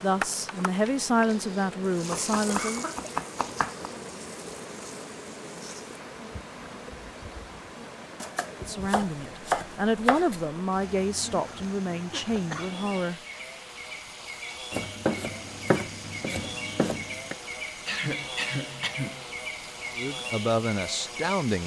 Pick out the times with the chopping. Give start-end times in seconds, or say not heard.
2.1-3.9, 8.2-10.4, 14.7-17.4.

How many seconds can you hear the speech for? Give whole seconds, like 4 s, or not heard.
9 s.